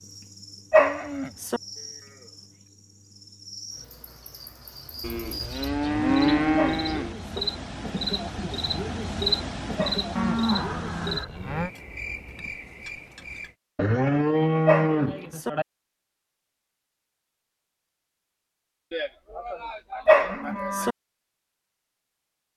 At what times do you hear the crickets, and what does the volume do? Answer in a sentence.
The crickets can be heard from 0.0 to 13.6 s, getting louder then quieter.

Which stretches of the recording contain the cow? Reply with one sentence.
You can hear the cow from 0.8 to 2.3 s, from 5.0 to 7.2 s, from 10.2 to 11.7 s, from 13.8 to 15.7 s and from 18.9 to 20.9 s.